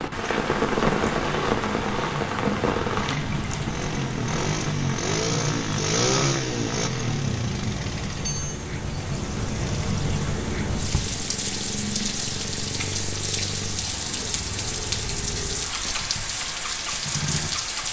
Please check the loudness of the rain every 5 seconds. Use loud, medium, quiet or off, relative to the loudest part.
loud, medium, loud, loud.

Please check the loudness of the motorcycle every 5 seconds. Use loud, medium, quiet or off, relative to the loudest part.
loud, loud, medium, medium.